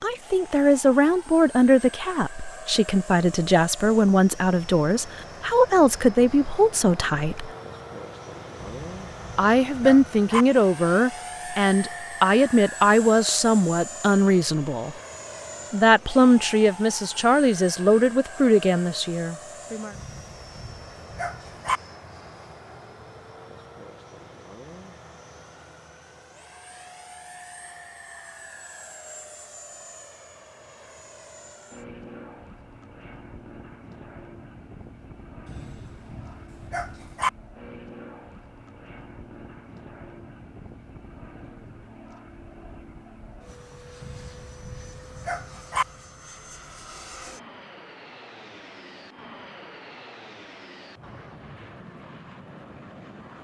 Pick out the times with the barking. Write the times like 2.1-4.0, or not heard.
8.6-10.4, 19.9-21.8, 35.5-37.3, 44.0-45.9.